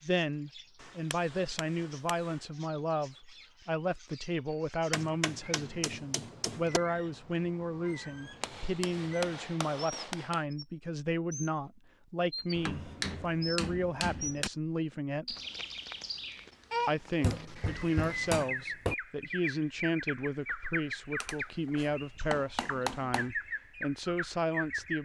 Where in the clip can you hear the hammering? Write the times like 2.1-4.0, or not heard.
0.8-2.4, 4.9-6.8, 8.4-10.4, 12.6-14.5, 17.2-18.9, 21.2-23.3.